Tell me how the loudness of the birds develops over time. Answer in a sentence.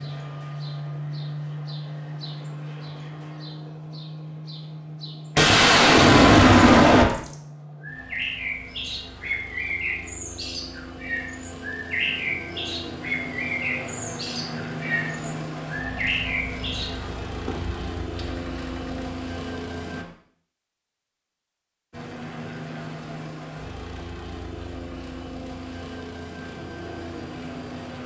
The volume of the birds goes up.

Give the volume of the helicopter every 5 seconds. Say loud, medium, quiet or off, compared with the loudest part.
loud, medium, loud, loud, loud, loud.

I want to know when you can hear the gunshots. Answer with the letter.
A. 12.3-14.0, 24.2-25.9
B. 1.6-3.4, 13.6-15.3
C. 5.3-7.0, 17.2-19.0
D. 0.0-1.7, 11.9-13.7
C.